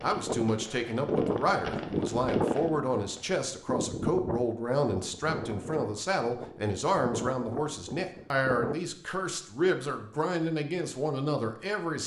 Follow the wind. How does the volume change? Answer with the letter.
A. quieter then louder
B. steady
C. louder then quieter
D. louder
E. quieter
E.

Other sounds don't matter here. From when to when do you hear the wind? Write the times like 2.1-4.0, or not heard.
0.0-8.8.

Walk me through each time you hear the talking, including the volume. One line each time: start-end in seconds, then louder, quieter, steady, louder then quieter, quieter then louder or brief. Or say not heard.
0.0-12.0 steady.